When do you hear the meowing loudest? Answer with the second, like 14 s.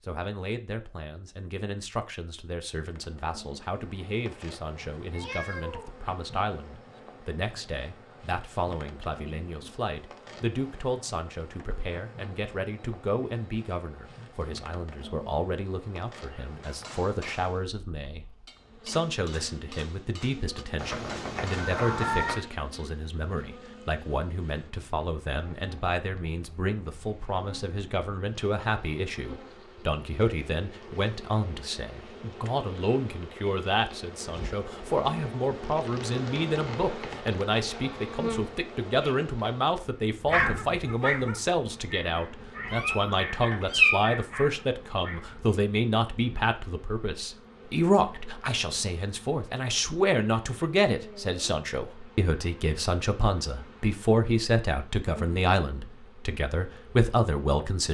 44 s.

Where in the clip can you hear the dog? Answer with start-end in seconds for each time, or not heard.
40.3-45.5.